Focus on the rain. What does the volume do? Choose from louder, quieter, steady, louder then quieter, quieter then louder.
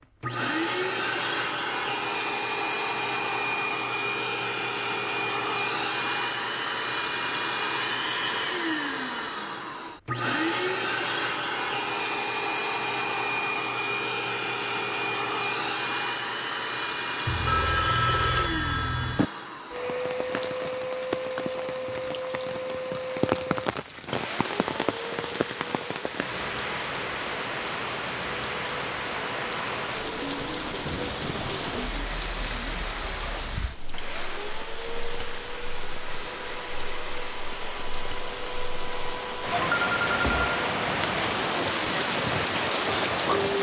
quieter then louder.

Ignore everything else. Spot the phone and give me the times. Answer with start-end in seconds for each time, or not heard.
17.2-19.2, 39.5-40.6.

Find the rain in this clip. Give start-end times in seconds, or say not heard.
19.7-43.5.